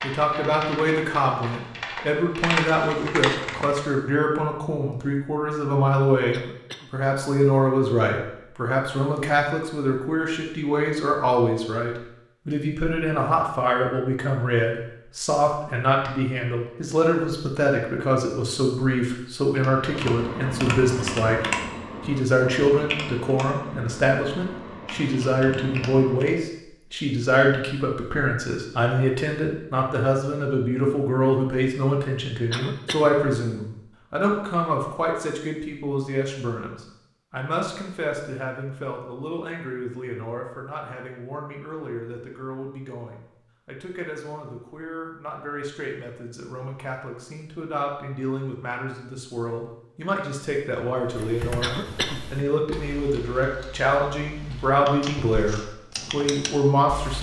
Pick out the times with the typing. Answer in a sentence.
You can hear the typing from 0.0 to 3.9 s, from 19.5 to 26.4 s and from 51.0 to 57.1 s.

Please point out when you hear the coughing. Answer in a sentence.
You can hear the coughing from 6.3 to 6.9 s, from 32.5 to 33.1 s and from 51.6 to 52.2 s.